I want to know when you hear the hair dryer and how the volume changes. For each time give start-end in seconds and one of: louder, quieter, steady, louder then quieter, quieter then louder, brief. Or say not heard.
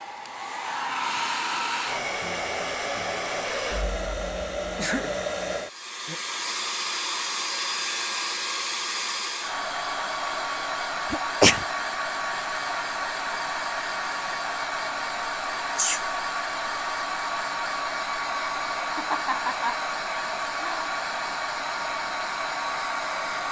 0.0-23.4 steady.